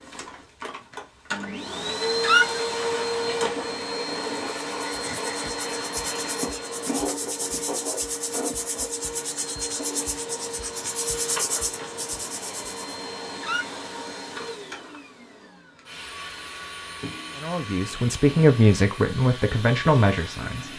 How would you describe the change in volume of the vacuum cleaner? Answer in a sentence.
The volume of the vacuum cleaner goes down.